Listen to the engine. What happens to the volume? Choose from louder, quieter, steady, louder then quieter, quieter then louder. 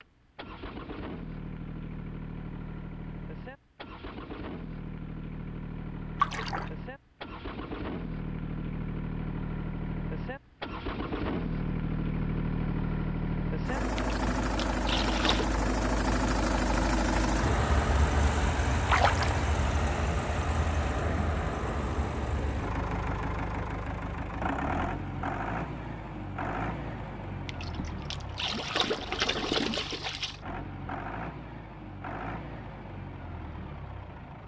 louder then quieter.